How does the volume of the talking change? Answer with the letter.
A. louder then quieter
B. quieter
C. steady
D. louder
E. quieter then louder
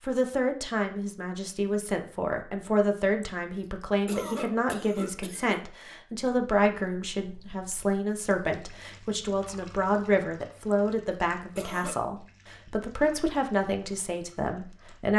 C.